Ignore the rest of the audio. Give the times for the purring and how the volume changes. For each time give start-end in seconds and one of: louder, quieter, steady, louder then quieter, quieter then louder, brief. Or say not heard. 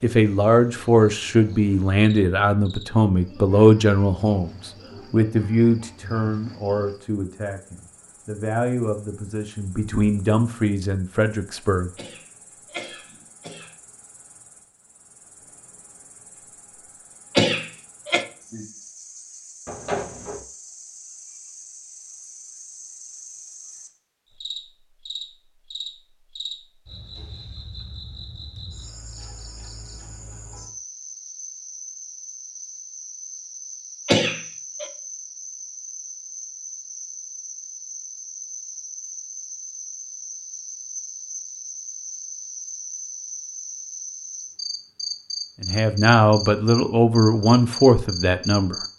not heard.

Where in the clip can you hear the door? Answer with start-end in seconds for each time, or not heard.
19.6-20.4.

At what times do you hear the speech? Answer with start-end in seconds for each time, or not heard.
0.0-11.9, 45.6-48.8.